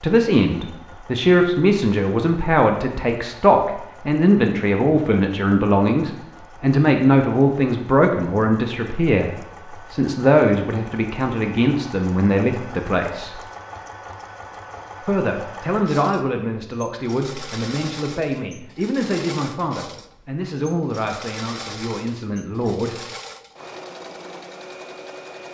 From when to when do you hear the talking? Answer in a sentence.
The talking can be heard from 0.0 to 13.4 s and from 15.0 to 23.1 s.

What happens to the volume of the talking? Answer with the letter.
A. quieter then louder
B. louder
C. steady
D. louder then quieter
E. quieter
E.